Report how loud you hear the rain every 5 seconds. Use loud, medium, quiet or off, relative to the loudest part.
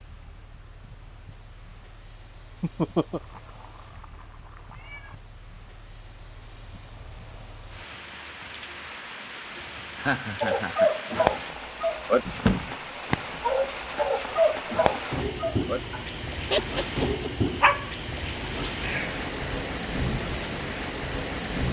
quiet, quiet, medium, loud, loud.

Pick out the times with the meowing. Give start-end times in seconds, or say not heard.
3.1-5.2.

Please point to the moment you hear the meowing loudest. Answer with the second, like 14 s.
5 s.